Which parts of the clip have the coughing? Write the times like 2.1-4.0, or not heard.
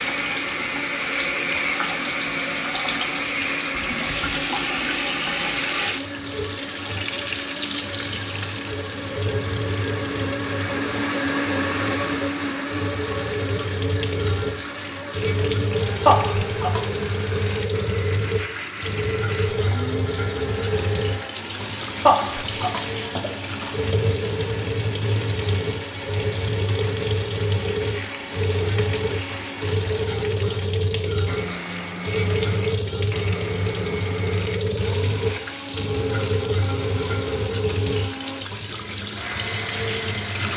16.1-16.9, 22.1-23.6.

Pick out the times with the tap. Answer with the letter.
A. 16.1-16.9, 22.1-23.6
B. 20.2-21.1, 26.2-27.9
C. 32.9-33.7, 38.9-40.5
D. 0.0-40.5
D.